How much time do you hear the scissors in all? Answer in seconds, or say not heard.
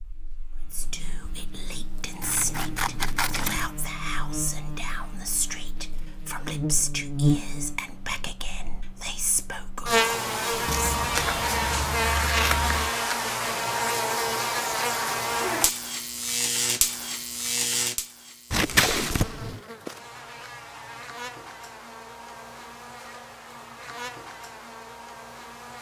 5 s.